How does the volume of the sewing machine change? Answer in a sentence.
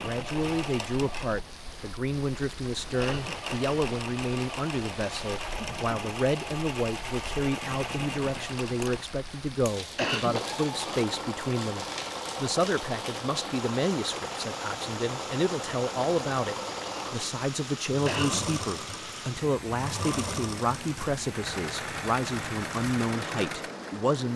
The volume of the sewing machine stays about the same.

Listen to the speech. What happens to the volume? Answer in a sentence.
The volume of the speech stays about the same.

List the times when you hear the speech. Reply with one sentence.
You can hear the speech from 0.0 to 24.3 s.